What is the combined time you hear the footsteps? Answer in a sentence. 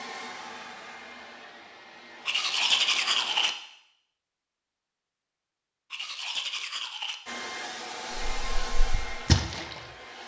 You can't hear the footsteps here.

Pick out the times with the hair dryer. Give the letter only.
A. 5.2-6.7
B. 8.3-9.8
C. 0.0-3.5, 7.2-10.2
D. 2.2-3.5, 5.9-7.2
C.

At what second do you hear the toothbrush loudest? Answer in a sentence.
The volume of the toothbrush peaks at 3 seconds.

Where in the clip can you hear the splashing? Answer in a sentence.
You can hear the splashing from 8.3 to 9.8 s.